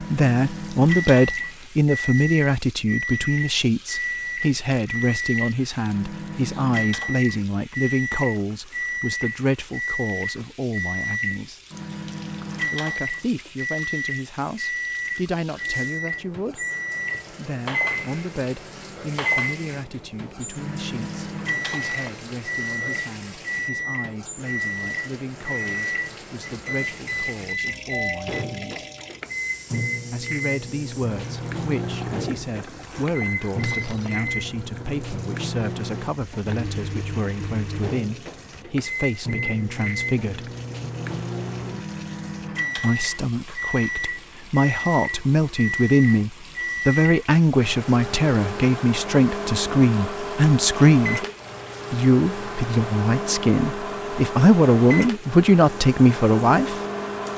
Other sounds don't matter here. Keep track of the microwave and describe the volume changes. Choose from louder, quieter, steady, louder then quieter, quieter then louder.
steady.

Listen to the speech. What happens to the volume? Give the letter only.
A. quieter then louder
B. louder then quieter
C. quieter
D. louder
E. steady
A.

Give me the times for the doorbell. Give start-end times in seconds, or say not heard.
27.9-29.1.